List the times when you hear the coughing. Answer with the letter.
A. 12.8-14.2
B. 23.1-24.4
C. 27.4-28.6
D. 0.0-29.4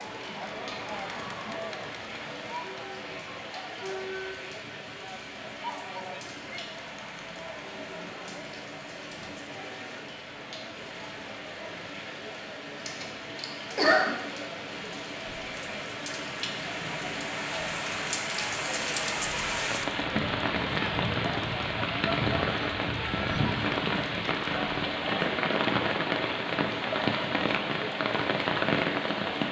A.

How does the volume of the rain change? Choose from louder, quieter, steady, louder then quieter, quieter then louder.
louder.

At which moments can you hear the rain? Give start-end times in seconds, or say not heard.
0.0-29.4.